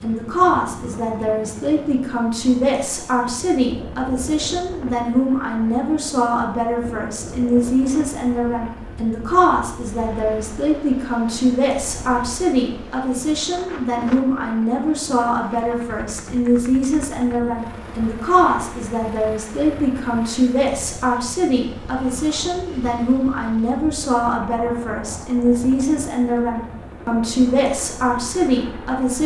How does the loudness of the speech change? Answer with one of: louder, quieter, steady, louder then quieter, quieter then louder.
steady.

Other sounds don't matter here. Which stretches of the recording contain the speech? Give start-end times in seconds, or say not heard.
0.0-29.2.